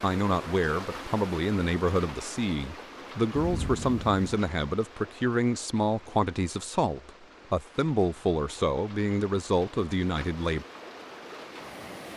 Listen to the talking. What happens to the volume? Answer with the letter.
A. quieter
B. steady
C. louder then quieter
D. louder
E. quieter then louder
B.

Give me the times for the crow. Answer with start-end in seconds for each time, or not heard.
not heard.